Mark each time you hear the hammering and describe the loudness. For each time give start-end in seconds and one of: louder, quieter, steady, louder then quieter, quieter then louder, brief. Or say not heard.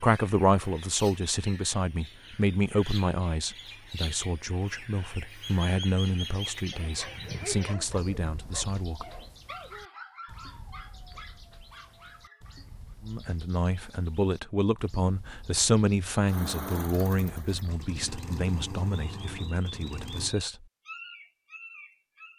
not heard.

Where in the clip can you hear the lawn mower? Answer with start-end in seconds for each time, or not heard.
16.2-20.4.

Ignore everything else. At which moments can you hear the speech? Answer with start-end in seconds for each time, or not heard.
0.0-9.1, 13.0-20.6.